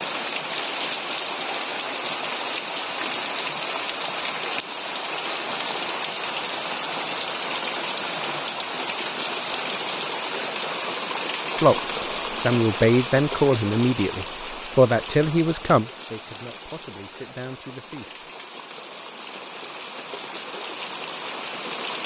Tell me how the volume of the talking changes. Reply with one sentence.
The volume of the talking goes down.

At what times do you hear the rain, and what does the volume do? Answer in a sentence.
You can hear the rain from 0.0 to 22.0 s, getting quieter.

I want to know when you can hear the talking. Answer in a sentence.
The talking can be heard from 11.6 to 18.2 s.